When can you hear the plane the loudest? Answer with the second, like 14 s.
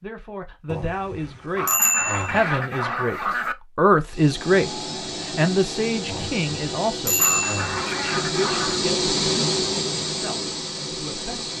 9 s.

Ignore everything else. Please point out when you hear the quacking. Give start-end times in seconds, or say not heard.
1.6-3.5, 7.2-8.8.